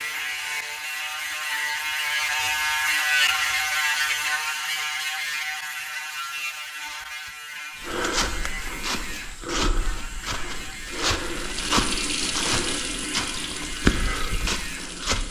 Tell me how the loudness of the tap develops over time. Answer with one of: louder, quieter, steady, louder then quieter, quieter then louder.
louder then quieter.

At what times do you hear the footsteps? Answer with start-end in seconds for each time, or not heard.
7.8-15.2.